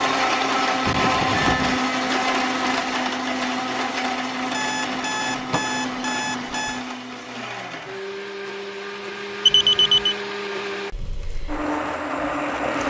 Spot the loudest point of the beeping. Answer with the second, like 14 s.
10 s.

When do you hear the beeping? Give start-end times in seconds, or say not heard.
0.8-1.8, 4.5-6.8, 9.4-10.2.